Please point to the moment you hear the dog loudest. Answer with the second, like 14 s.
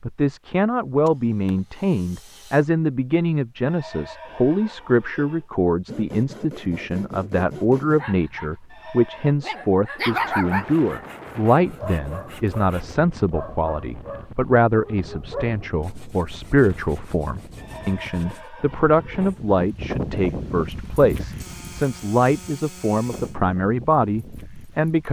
10 s.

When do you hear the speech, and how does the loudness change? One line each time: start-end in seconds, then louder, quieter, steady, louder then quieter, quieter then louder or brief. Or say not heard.
0.0-25.0 steady.